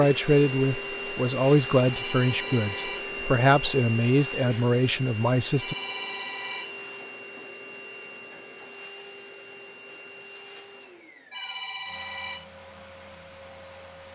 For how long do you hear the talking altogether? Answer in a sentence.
The talking can be heard for 6 seconds in total.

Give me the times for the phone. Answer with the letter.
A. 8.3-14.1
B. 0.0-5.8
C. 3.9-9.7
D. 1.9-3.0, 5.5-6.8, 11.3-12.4
D.